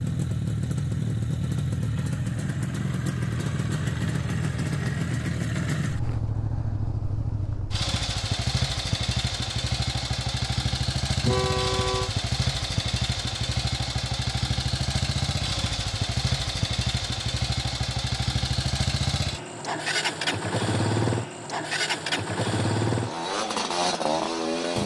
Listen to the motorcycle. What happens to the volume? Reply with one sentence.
The volume of the motorcycle stays about the same.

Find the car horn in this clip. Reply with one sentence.
You can hear the car horn from 11.2 to 12.1 s.